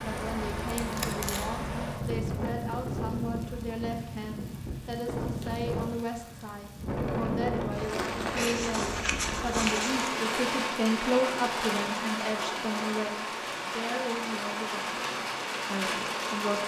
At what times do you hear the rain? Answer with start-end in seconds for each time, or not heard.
0.0-16.6.